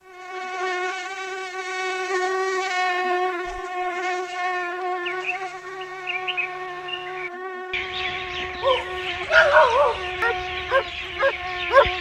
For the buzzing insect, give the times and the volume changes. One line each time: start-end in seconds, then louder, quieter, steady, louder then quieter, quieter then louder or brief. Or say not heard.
0.0-11.9 quieter.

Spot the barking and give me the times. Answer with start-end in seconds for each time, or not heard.
8.6-11.8.